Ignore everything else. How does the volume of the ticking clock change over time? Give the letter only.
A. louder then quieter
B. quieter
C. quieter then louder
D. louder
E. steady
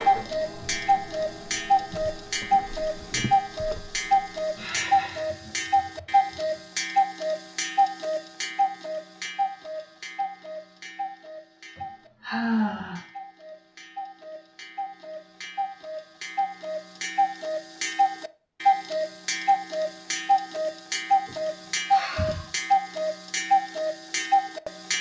C.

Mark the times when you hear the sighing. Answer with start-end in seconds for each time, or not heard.
4.5-6.6, 11.8-13.1, 21.2-22.4.